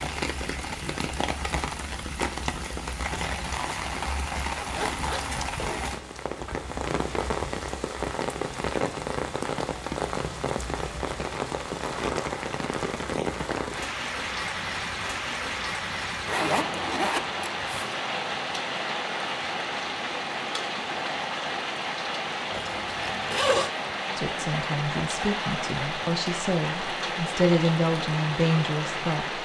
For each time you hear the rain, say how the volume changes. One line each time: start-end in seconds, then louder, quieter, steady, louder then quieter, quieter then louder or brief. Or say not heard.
0.0-29.3 steady.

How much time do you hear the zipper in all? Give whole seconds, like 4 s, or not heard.
4 s.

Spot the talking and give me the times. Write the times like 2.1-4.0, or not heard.
24.1-29.3.